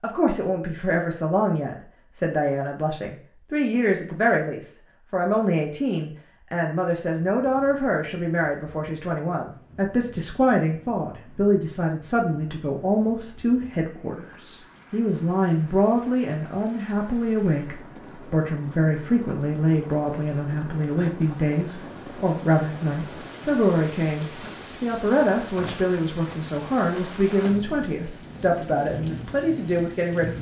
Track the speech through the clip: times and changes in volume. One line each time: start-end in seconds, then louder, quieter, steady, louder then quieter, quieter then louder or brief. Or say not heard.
0.0-30.3 steady.